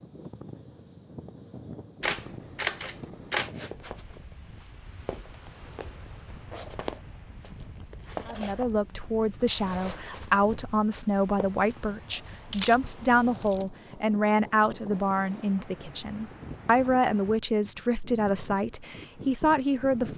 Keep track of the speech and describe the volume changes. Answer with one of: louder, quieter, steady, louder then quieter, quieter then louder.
steady.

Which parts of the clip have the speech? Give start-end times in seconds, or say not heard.
8.2-20.1.